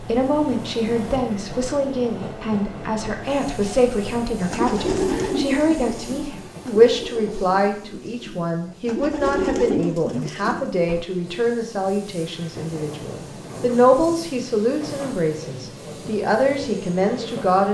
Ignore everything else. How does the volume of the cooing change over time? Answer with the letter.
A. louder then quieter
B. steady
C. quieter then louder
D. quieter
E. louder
C.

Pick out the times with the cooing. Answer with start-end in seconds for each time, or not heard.
4.5-11.1.